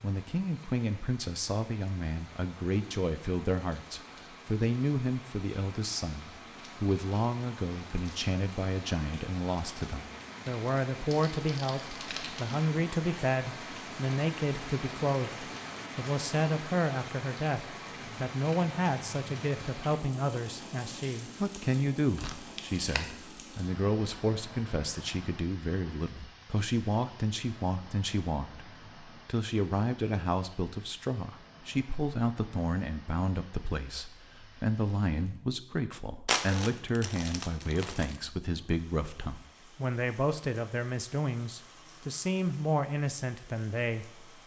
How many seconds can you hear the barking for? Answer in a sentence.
You can't hear the barking here.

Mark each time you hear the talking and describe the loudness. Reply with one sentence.
The talking can be heard from 0.0 to 44.4 s, at a steady volume.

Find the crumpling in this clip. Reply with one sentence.
The crumpling can be heard from 11.1 to 12.6 s, from 22.1 to 23.1 s and from 36.2 to 38.2 s.